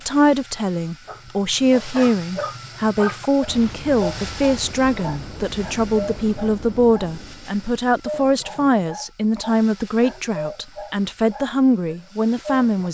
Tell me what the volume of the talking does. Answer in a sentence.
The volume of the talking stays about the same.